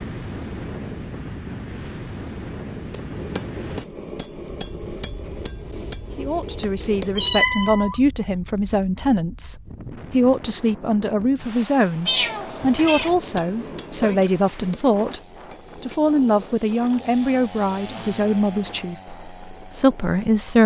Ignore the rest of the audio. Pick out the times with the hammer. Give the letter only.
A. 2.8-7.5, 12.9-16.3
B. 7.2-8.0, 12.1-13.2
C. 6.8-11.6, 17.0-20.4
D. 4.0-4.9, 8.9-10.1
A.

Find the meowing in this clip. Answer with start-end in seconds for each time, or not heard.
7.2-8.0, 12.1-13.2.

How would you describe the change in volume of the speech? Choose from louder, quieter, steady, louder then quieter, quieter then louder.
steady.